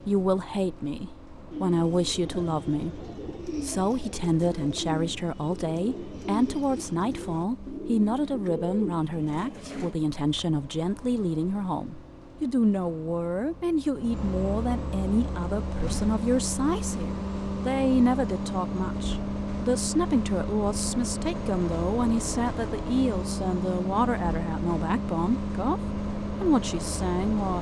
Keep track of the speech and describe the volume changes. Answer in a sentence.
The volume of the speech stays about the same.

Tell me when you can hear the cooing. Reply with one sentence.
You can hear the cooing from 1.5 to 9.9 s.